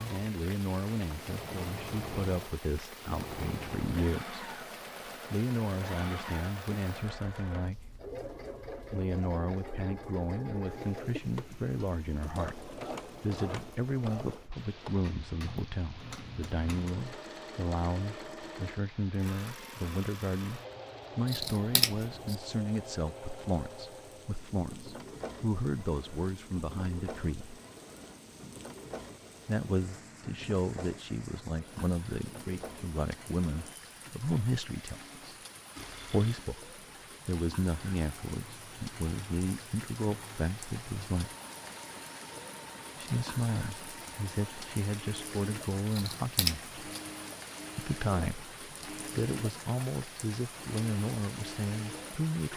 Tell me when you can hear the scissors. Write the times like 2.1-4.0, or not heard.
21.2-22.4, 45.9-47.0.